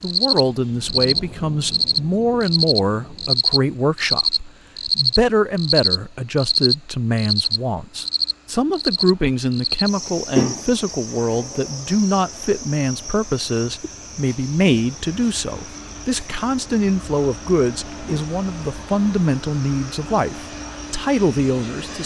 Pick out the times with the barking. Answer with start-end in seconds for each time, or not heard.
not heard.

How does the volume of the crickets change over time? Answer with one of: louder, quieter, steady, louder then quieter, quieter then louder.
quieter.